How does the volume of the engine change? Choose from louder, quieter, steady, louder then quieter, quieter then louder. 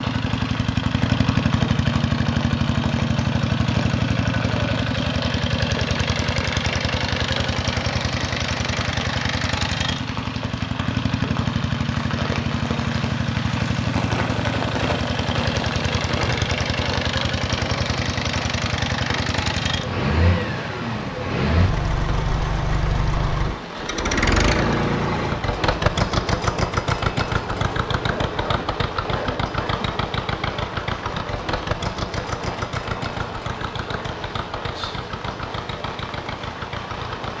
quieter.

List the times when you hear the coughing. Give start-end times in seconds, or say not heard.
28.1-29.9.